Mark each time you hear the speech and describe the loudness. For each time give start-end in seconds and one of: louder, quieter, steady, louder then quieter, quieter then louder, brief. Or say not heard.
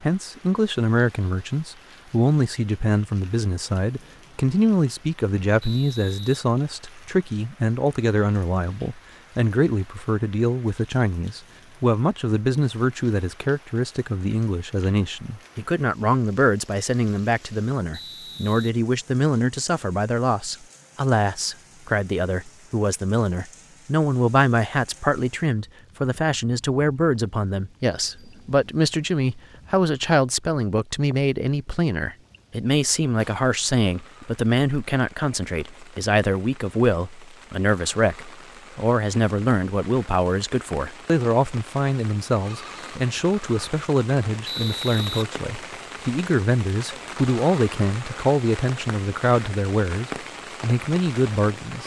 0.0-51.8 steady.